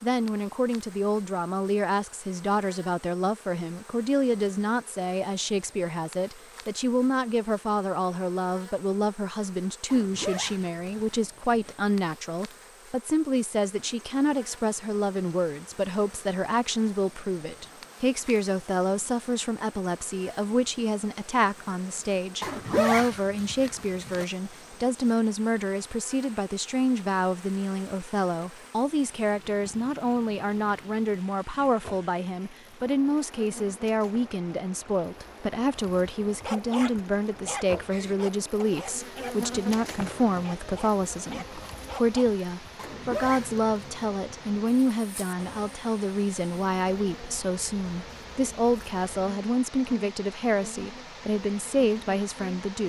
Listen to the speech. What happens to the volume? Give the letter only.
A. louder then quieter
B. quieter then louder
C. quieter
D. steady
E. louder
D.